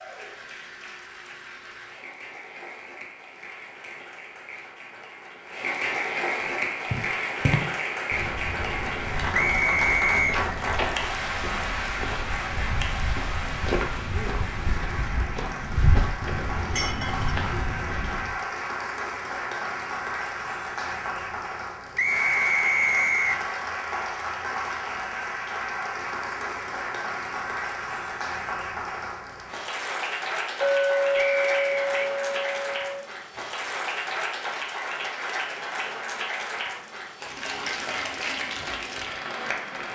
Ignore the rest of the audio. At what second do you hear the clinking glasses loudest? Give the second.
31 s.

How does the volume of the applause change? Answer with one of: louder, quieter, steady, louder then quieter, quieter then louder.
steady.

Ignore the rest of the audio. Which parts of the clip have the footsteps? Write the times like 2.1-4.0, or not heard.
6.5-18.4.